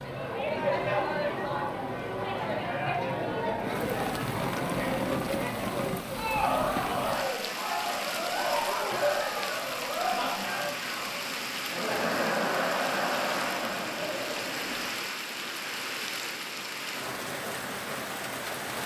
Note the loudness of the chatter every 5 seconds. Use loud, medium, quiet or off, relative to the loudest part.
loud, loud, loud, off.